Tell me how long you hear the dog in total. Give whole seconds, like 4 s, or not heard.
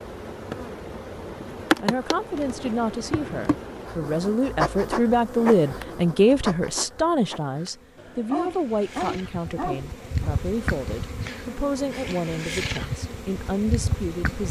2 s.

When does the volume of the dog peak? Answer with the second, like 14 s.
9 s.